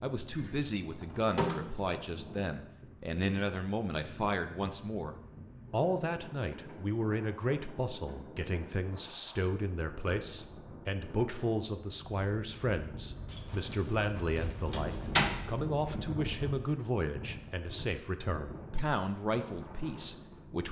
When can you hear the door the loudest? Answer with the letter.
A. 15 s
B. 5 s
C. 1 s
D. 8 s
A.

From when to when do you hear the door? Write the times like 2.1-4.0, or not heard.
0.3-1.9, 13.3-15.3.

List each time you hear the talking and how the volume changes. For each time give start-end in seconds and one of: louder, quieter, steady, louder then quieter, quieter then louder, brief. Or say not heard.
0.0-20.6 steady.